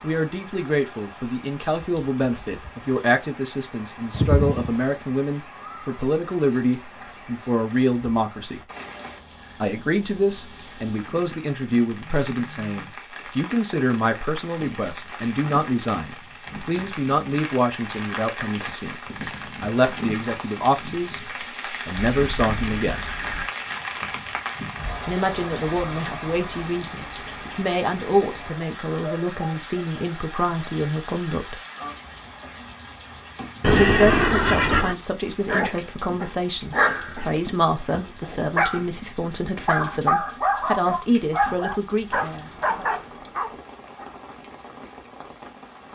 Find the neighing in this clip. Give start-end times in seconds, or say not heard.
4.1-4.9, 21.9-23.4, 33.6-35.0.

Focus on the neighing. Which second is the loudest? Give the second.
34 s.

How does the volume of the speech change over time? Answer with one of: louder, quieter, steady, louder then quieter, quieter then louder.
steady.